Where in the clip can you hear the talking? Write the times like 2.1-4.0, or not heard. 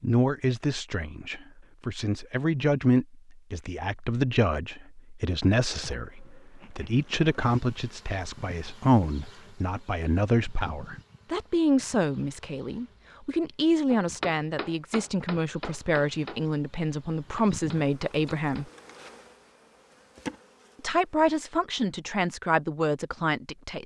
0.0-18.6, 20.8-23.8.